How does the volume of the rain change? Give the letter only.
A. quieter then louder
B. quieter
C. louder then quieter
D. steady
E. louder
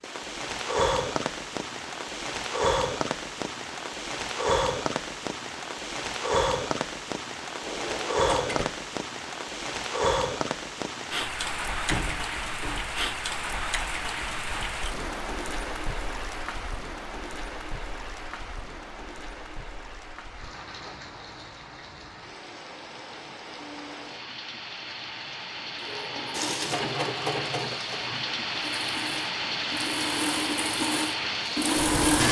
A.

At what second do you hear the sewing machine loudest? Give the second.
32 s.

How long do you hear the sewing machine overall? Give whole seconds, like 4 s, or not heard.
6 s.